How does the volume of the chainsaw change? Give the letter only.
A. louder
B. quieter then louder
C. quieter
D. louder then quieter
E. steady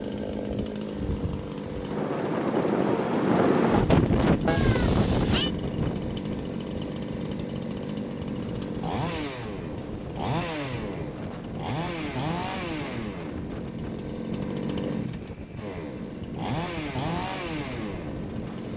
E.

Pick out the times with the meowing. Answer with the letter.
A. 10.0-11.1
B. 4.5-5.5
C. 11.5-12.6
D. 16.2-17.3
B.